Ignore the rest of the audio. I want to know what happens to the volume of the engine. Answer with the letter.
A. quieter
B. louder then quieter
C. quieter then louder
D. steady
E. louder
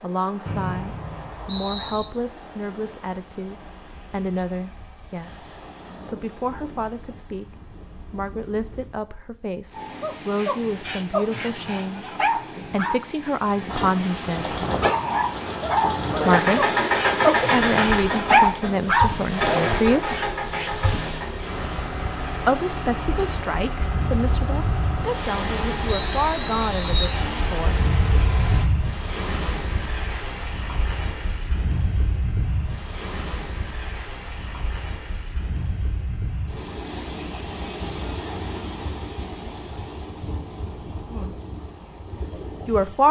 A.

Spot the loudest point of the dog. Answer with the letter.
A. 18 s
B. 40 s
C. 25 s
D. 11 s
A.